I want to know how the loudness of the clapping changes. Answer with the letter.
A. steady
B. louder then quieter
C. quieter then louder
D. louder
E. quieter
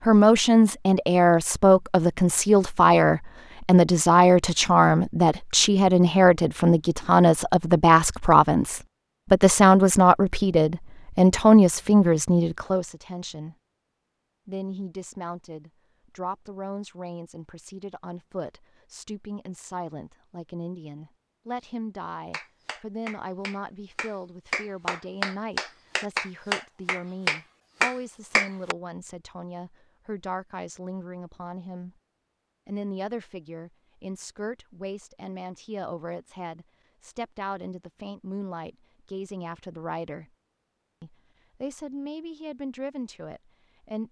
D.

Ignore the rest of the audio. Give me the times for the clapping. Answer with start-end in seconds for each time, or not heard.
22.3-28.8.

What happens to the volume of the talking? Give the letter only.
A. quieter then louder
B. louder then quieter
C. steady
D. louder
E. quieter
E.